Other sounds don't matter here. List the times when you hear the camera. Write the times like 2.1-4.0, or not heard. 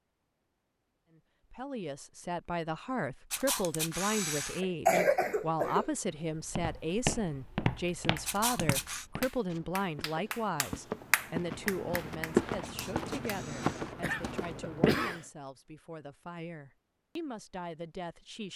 3.3-4.6, 8.2-9.1, 12.6-13.9.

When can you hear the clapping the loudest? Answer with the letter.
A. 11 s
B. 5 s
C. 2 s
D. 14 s
A.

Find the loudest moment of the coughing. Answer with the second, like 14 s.
5 s.